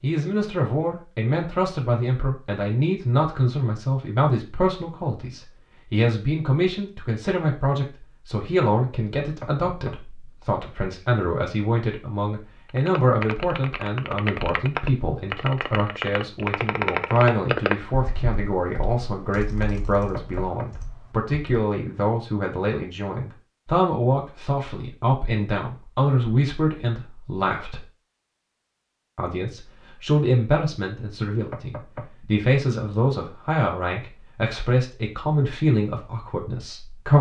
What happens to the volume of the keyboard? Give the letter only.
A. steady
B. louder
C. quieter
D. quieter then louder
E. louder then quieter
E.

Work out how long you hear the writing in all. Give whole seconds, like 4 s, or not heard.
not heard.